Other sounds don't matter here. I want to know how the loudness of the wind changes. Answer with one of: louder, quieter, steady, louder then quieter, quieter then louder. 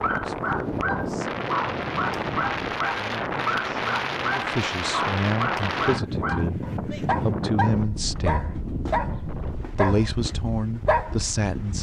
quieter.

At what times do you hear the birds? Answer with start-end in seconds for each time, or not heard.
not heard.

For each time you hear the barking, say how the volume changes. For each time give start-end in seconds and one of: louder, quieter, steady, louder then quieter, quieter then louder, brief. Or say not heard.
0.0-11.7 steady.